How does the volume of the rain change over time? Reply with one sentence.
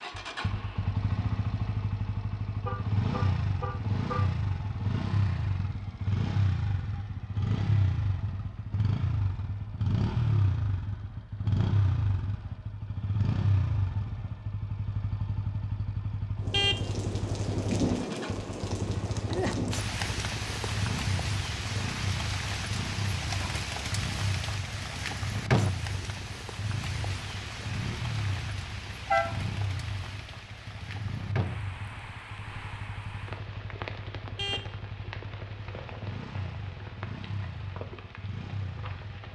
The volume of the rain goes down.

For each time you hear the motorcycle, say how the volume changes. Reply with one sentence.
The motorcycle can be heard from 0.0 to 39.3 s, getting quieter.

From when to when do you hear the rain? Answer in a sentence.
You can hear the rain from 16.4 to 39.3 s.